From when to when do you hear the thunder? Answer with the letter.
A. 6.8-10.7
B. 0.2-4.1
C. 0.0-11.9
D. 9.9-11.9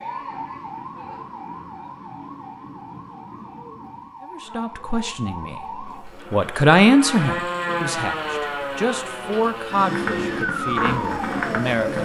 B.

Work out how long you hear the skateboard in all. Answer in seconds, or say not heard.
2 s.